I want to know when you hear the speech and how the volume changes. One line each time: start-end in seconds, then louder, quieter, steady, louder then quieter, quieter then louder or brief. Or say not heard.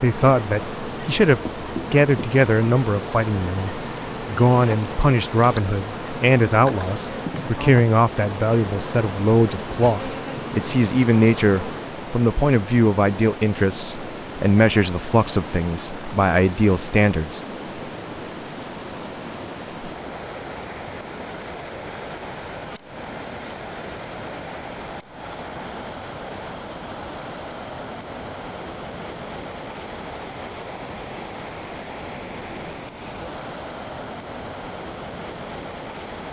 0.0-17.4 steady.